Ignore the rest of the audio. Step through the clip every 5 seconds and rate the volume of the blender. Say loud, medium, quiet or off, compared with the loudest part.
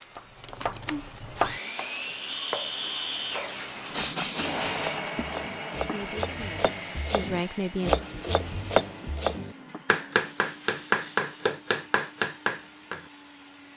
loud, medium, quiet.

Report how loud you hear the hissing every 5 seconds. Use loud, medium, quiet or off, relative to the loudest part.
loud, medium, quiet.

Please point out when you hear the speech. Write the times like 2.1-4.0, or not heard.
5.8-8.0.